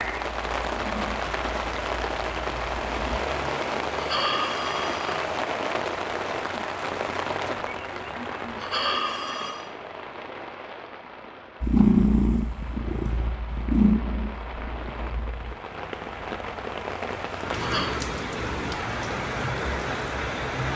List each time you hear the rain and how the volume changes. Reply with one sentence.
You can hear the rain from 0.0 to 20.7 s, getting quieter then louder.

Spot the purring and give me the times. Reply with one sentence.
The purring can be heard from 0.0 to 3.2 s and from 11.6 to 15.6 s.